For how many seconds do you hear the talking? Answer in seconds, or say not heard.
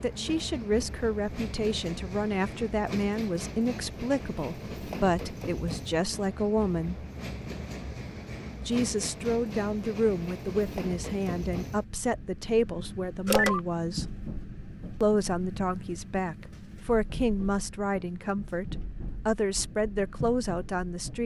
19 s.